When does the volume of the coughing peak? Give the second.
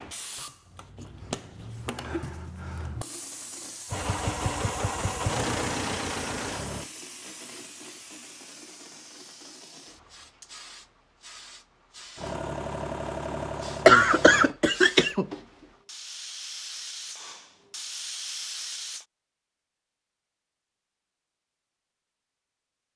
14 s.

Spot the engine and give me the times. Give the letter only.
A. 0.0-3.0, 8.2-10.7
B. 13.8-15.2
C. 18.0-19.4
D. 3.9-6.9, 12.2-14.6
D.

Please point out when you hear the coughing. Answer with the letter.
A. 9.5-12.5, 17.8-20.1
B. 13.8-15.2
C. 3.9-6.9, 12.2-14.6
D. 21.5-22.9
B.